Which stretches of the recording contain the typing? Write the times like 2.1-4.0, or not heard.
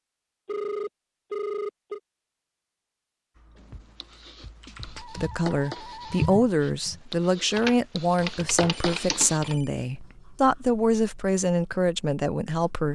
3.4-9.6.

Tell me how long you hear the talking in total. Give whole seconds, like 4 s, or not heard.
8 s.